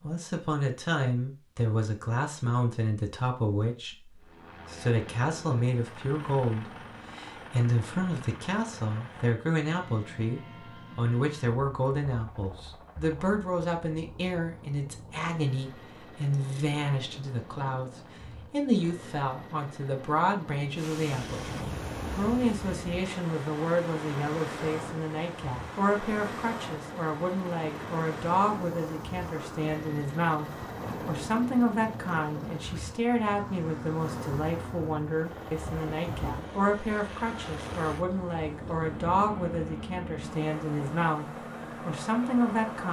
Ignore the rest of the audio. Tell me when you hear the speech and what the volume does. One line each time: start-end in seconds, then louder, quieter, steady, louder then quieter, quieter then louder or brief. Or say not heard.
0.0-42.8 steady.